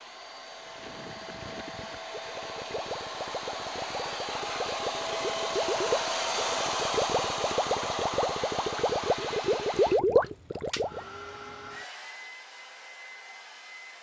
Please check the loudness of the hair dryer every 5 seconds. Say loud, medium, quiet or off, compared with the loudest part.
medium, loud, quiet.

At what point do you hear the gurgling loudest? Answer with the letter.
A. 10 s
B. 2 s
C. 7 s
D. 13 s
A.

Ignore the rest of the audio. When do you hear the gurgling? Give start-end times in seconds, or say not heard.
0.6-11.0.